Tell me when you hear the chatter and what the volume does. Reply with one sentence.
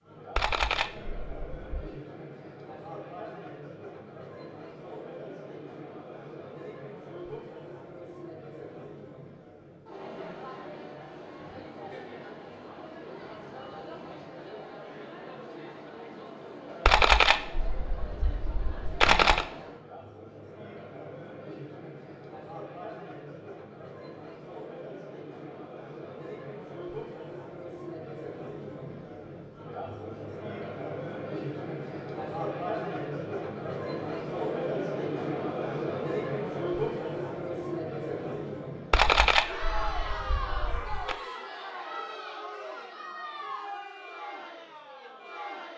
You can hear the chatter from 0.0 to 45.7 s, getting louder.